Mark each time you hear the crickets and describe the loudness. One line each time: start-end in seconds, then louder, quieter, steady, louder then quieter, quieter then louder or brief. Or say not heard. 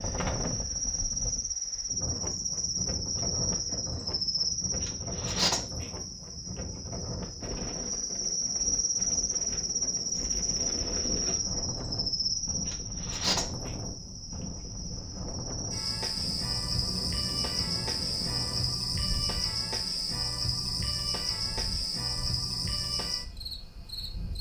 0.0-24.3 steady.